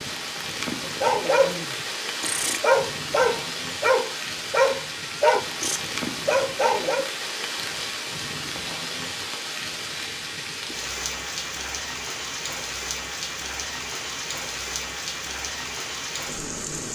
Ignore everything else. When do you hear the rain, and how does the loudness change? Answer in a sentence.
The rain can be heard from 0.0 to 16.9 s, at a steady volume.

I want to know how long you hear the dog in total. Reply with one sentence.
You can hear the dog for 6 seconds altogether.